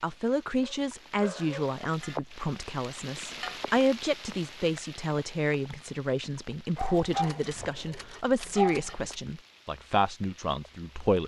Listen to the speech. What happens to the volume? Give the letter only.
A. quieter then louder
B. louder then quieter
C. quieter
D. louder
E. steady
E.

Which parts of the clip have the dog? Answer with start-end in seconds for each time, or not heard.
0.6-1.8, 6.8-9.2.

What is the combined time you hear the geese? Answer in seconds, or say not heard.
not heard.